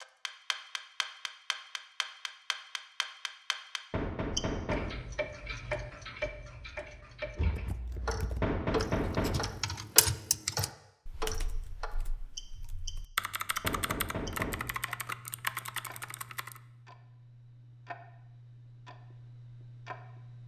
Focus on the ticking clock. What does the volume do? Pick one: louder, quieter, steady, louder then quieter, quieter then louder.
quieter.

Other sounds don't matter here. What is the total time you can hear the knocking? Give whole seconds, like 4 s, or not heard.
3 s.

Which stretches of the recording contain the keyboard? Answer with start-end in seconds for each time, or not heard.
7.5-16.6.